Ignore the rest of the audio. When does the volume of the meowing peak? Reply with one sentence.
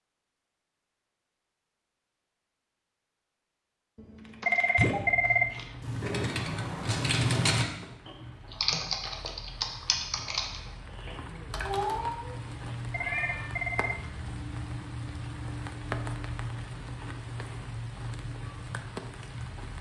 The loudest moment of the meowing is at 12 seconds.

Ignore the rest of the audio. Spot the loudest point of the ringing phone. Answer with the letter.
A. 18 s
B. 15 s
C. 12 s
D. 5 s
D.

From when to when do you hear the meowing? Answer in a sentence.
You can hear the meowing from 6.0 to 7.6 s and from 11.1 to 13.6 s.